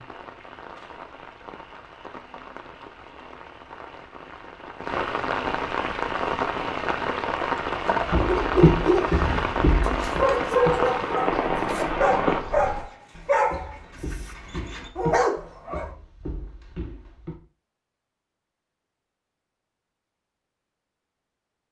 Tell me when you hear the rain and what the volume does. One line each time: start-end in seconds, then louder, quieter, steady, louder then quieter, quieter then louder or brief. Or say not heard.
0.0-12.4 louder.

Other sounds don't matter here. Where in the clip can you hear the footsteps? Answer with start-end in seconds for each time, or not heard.
8.0-17.4.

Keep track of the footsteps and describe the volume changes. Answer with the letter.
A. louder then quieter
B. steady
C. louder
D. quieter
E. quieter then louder
D.